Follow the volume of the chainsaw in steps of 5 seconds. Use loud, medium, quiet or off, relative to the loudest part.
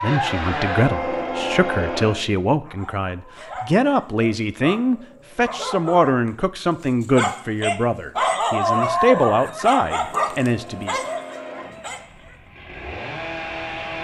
loud, off, medium.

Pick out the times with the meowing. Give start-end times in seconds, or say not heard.
not heard.